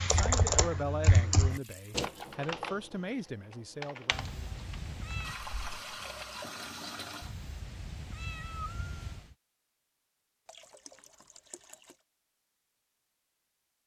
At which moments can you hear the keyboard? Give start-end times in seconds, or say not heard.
0.0-5.8.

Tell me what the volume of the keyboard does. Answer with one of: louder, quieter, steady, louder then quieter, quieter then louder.
quieter.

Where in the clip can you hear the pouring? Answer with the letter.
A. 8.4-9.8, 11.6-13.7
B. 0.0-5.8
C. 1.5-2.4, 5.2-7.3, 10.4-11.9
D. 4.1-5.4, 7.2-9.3
C.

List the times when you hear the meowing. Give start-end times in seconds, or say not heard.
4.1-5.4, 7.2-9.3.